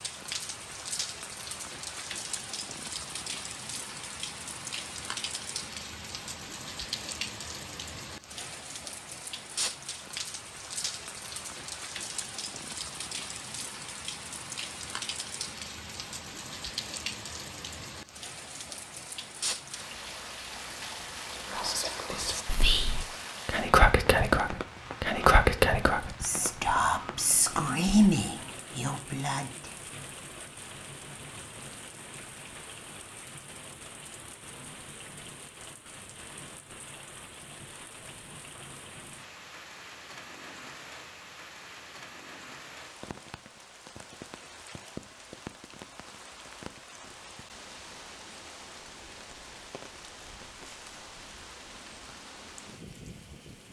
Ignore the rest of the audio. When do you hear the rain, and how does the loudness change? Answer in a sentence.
You can hear the rain from 0.0 to 53.6 s, getting quieter.